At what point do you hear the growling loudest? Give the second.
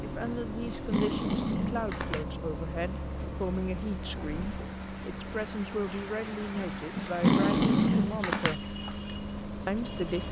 7 s.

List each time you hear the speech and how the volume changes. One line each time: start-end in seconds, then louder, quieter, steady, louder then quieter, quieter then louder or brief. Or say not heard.
0.0-8.7 steady
9.7-10.2 brief.